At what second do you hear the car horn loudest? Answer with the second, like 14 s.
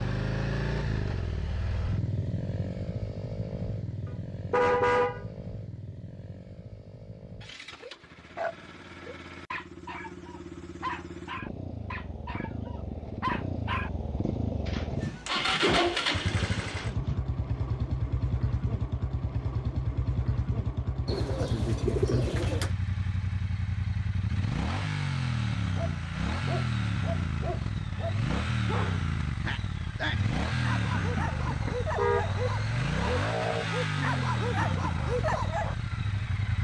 5 s.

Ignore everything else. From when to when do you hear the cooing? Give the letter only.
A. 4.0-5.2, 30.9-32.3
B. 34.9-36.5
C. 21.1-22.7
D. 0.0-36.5
C.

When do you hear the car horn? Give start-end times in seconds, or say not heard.
4.0-5.2, 30.9-32.3.